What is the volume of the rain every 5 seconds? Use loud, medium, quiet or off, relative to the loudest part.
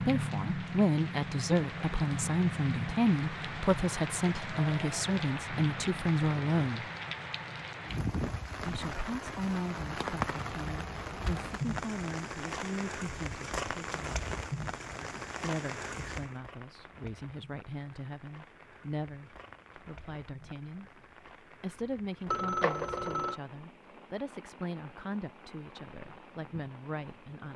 loud, loud, loud, medium, quiet, quiet.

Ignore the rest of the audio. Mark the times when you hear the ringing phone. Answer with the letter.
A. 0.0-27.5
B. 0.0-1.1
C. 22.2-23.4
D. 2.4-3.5
C.